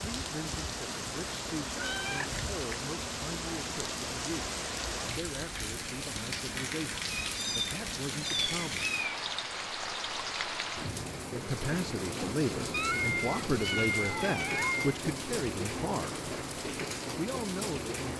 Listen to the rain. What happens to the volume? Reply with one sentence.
The loudness of the rain stays about the same.